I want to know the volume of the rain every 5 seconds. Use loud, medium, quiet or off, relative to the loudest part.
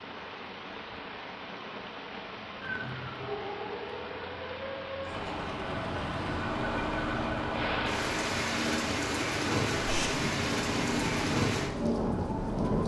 medium, loud, loud.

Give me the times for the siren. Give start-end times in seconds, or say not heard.
2.6-12.7.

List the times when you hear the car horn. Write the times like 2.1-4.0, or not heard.
not heard.